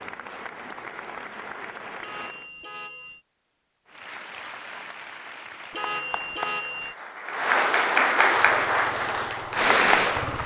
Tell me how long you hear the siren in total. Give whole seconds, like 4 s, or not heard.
not heard.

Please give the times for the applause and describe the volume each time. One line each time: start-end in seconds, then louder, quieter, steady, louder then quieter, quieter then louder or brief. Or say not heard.
0.0-2.5 brief
3.9-10.4 louder.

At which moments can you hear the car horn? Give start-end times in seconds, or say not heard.
2.0-3.2, 5.7-7.0.